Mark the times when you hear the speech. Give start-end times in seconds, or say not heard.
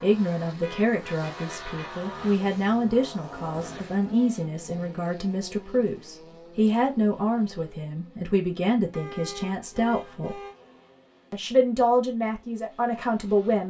0.0-10.4, 11.3-13.6.